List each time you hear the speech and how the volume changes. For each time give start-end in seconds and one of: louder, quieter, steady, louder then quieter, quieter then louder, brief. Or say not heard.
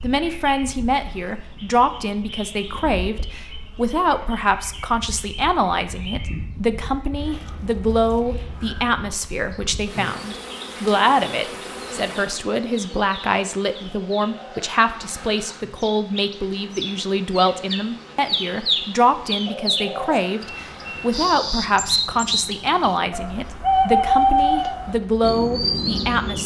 0.0-26.4 steady.